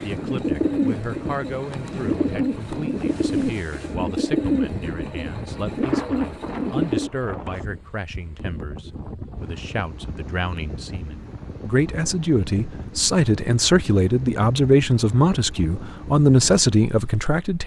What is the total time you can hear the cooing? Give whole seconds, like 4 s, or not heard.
7 s.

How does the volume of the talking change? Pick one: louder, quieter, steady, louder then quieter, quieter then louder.
louder.